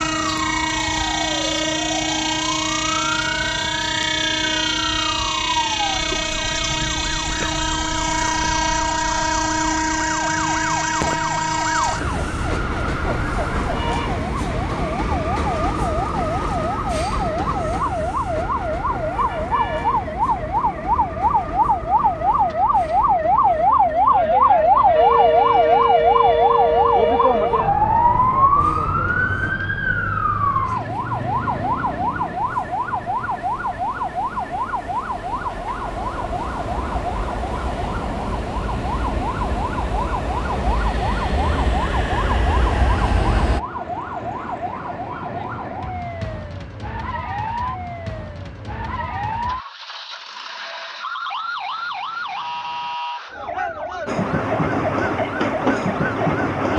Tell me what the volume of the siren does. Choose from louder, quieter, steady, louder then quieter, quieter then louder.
louder then quieter.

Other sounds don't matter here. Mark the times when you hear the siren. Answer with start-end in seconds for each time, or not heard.
0.0-56.7.